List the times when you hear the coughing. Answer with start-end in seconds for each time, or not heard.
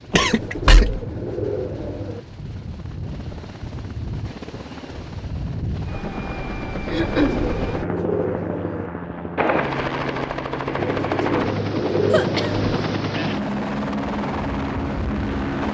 0.1-1.1, 6.9-7.5, 12.1-12.7.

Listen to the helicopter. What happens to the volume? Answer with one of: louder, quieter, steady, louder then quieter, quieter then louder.
louder.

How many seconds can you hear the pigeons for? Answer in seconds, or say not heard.
6 s.